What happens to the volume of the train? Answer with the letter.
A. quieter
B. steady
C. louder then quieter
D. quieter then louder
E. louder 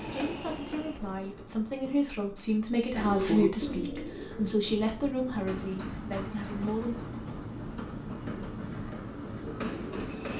D.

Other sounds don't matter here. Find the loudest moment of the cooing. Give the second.
3 s.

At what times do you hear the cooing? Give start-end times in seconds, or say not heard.
2.9-4.5, 8.8-10.1.